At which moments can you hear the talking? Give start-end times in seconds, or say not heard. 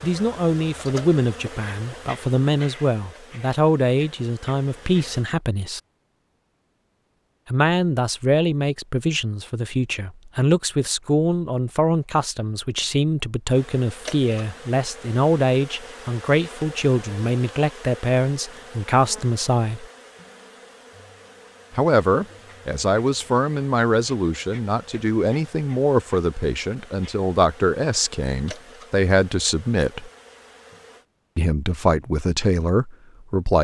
0.0-5.8, 7.5-19.9, 21.8-30.1, 31.4-33.5.